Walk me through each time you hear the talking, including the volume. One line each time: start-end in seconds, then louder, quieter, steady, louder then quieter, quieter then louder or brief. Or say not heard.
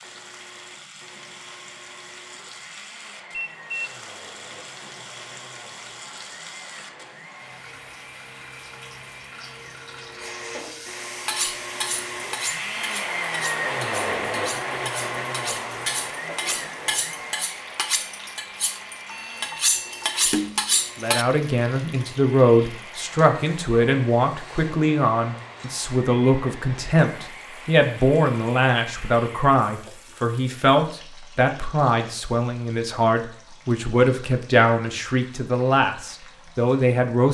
21.0-37.3 steady.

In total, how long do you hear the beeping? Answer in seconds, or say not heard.
2 s.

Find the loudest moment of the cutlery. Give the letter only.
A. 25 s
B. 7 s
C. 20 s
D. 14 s
C.